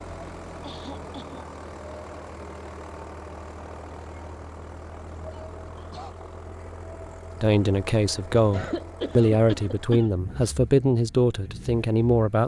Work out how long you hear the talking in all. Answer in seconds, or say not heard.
5 s.